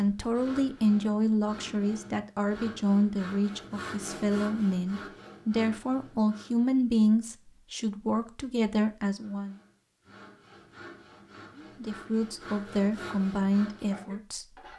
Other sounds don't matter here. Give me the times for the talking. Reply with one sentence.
You can hear the talking from 0.0 to 9.6 s and from 11.6 to 14.4 s.